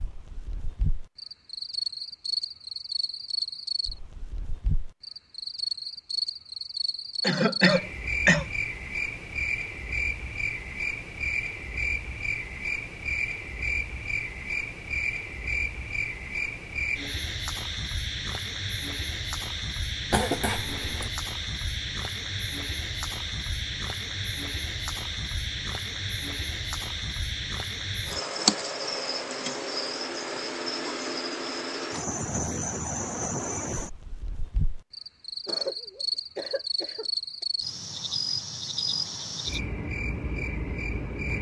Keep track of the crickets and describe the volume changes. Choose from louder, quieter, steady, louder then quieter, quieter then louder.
steady.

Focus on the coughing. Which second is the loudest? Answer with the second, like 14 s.
8 s.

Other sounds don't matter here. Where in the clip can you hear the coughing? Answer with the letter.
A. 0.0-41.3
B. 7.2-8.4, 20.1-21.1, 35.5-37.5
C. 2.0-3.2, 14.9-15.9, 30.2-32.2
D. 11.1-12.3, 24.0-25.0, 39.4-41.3
B.